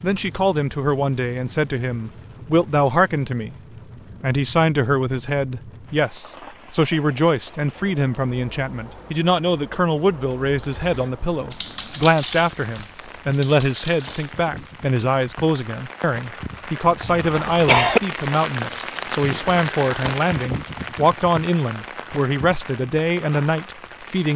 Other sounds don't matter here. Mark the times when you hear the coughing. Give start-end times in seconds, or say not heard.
17.0-18.0.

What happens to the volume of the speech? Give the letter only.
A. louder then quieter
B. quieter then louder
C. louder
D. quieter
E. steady
E.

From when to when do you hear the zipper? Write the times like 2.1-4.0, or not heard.
not heard.